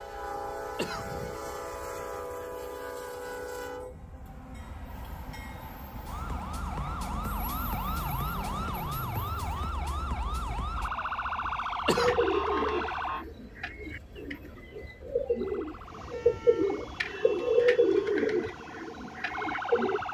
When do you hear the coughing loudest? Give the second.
12 s.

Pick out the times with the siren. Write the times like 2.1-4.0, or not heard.
6.0-13.2, 15.3-20.1.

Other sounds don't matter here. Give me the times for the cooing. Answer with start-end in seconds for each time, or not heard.
11.9-20.0.